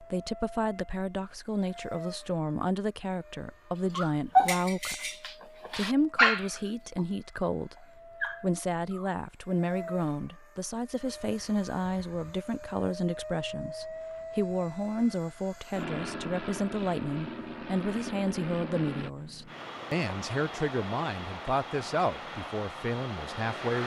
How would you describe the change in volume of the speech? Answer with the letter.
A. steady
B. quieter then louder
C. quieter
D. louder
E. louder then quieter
A.